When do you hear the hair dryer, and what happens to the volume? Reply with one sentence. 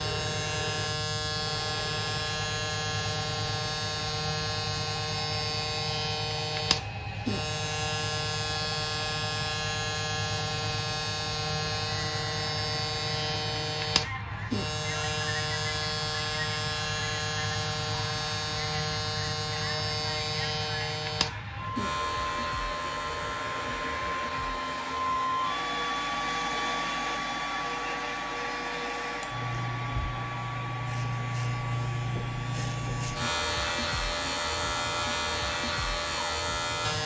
The hair dryer can be heard from 0.0 to 37.0 s, getting louder then quieter.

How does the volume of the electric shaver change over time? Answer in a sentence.
The loudness of the electric shaver goes down, then up.